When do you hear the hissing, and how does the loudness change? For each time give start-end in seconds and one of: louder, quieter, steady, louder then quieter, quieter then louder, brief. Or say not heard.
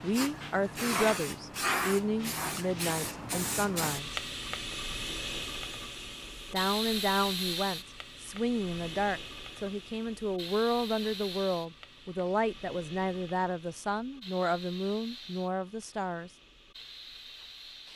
0.0-17.9 quieter.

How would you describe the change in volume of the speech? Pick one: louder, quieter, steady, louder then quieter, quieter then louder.
steady.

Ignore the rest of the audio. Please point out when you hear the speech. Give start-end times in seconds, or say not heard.
0.0-4.2, 6.5-16.3.